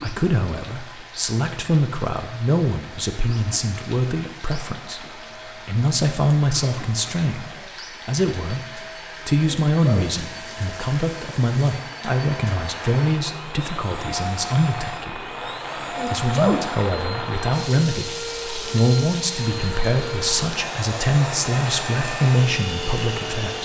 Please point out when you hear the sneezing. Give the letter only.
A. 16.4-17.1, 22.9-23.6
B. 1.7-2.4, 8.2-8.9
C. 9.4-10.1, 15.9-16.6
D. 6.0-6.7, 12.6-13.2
C.